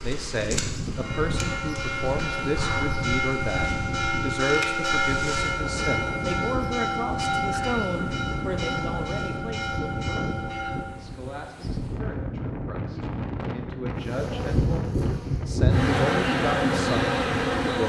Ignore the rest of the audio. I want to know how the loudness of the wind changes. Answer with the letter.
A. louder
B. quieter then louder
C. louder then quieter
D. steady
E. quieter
D.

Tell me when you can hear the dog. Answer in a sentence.
You can't hear the dog here.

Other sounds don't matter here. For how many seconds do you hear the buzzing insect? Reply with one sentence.
The buzzing insect can be heard for 9 seconds in total.